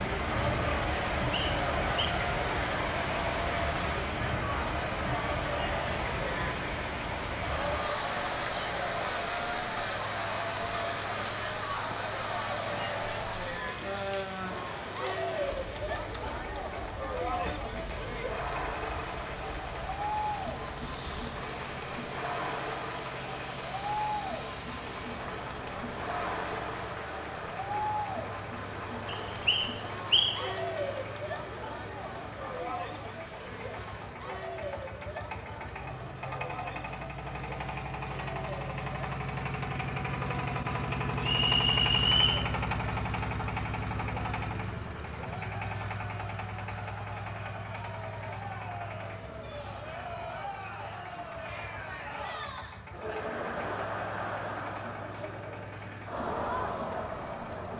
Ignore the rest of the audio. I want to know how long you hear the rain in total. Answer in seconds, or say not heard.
34 s.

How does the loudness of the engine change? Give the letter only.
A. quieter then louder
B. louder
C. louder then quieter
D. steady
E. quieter
C.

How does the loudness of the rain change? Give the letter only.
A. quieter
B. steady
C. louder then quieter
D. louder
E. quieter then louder
A.